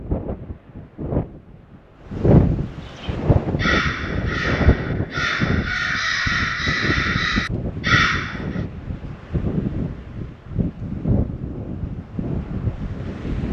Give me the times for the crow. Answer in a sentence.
The crow can be heard from 2.9 to 8.6 s.